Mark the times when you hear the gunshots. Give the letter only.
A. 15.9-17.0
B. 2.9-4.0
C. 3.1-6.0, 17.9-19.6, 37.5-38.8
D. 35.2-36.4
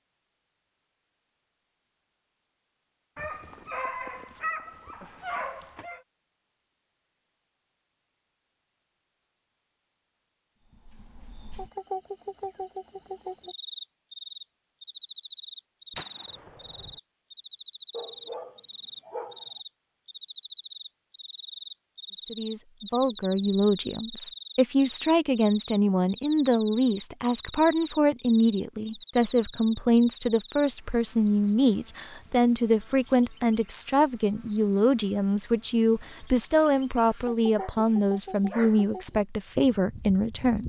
A.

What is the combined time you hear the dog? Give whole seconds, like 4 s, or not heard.
6 s.